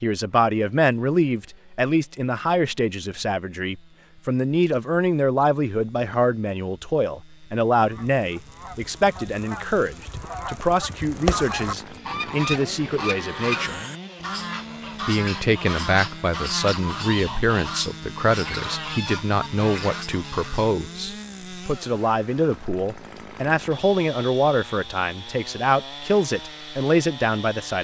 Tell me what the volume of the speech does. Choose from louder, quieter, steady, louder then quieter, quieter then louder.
steady.